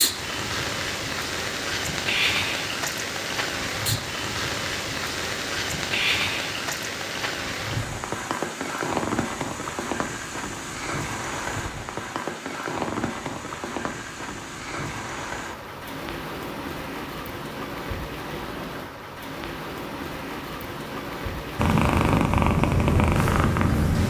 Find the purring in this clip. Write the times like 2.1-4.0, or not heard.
21.6-24.0.